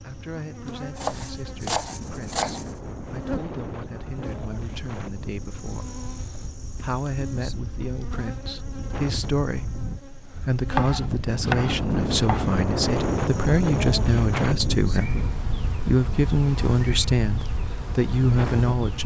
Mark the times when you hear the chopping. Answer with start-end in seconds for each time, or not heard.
0.9-2.8, 10.7-12.5.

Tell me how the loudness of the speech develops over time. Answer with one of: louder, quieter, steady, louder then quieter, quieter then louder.
louder.